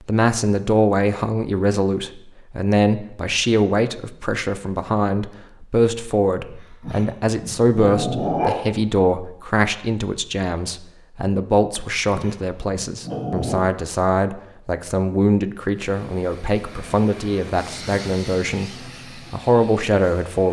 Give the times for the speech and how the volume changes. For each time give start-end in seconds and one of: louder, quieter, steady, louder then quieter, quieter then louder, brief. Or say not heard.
0.0-20.4 steady.